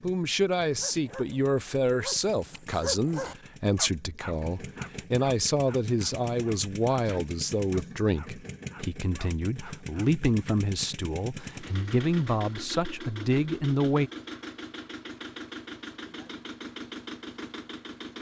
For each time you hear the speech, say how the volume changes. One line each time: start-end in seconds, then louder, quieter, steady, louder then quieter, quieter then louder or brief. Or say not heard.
0.0-14.1 steady.